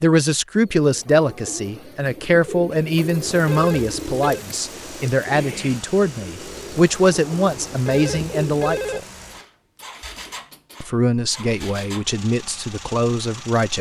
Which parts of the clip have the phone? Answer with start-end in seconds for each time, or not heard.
3.5-4.5, 7.8-9.0.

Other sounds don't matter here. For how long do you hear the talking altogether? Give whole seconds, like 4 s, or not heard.
12 s.